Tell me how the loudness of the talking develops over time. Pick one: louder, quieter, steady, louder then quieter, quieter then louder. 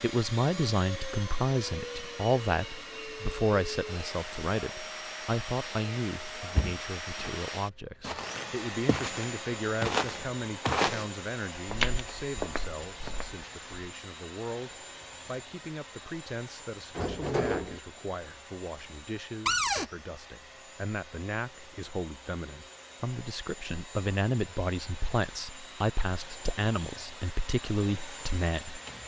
quieter then louder.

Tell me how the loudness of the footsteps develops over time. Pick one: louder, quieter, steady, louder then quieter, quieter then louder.
louder then quieter.